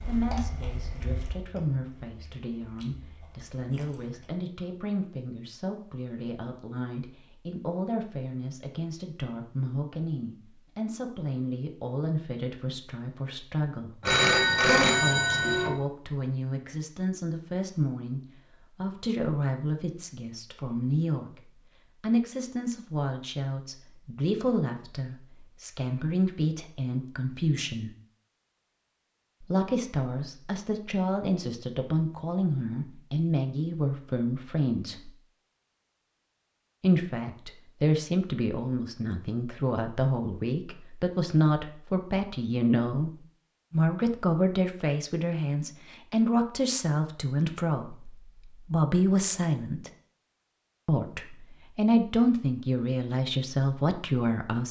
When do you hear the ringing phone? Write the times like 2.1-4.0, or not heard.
14.0-15.8.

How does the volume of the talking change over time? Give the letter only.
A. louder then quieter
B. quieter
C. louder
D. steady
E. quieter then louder
C.